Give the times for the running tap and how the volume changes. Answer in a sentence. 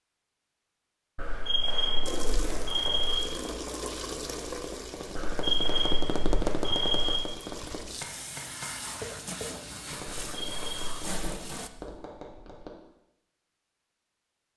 The running tap can be heard from 2.0 to 11.7 s, getting quieter then louder.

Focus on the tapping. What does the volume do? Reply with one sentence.
The volume of the tapping goes up, then down.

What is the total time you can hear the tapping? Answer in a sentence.
You can hear the tapping for 11 seconds altogether.